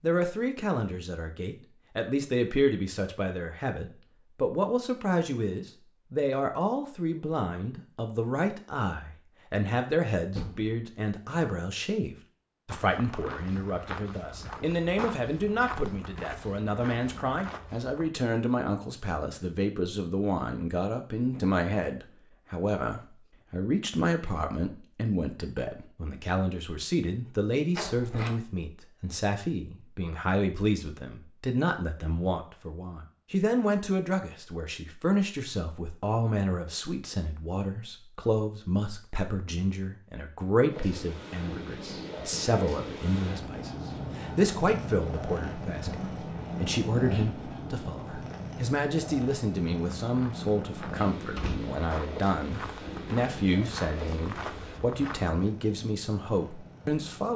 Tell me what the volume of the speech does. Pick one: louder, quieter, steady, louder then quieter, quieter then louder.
steady.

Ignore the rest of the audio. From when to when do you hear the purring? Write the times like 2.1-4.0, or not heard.
40.7-57.3.